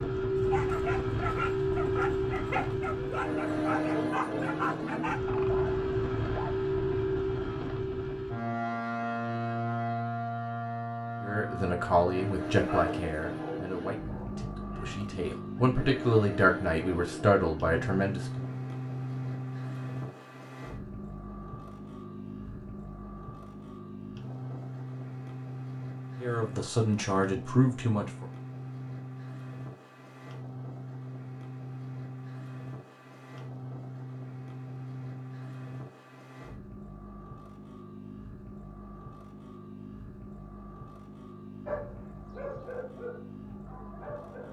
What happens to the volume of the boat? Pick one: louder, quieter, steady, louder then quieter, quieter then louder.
quieter.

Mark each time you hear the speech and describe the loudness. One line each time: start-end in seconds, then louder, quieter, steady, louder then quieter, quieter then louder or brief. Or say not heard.
11.2-18.5 quieter then louder
26.2-28.2 brief.